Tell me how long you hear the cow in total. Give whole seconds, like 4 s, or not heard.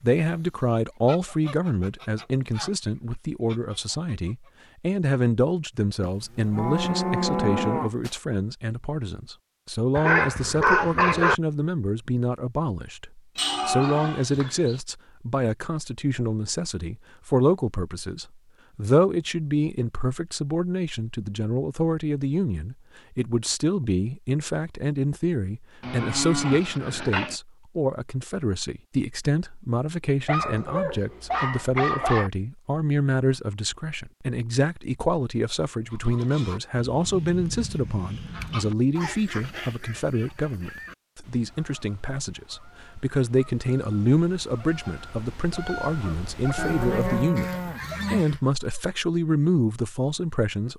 7 s.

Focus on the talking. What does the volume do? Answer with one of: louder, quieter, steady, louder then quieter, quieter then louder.
steady.